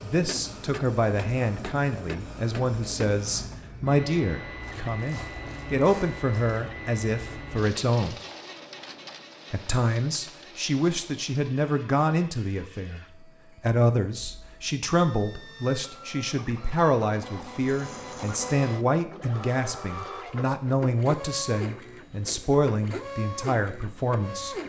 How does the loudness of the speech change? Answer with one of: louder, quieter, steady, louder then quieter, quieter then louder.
steady.